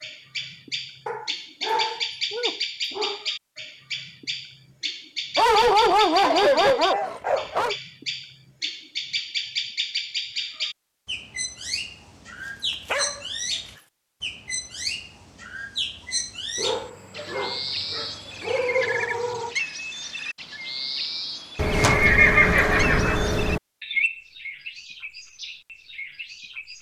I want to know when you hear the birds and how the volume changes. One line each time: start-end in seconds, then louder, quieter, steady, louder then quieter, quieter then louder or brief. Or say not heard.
0.0-26.7 steady.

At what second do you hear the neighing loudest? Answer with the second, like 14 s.
22 s.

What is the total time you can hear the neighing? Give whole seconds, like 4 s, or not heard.
2 s.